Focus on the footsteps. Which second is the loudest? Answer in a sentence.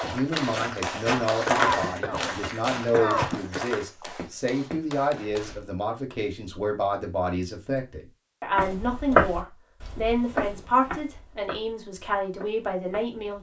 The volume of the footsteps peaks at 9 seconds.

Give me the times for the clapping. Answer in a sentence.
The clapping can be heard from 0.0 to 5.6 s.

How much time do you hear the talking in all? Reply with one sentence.
The talking can be heard for 13 seconds in total.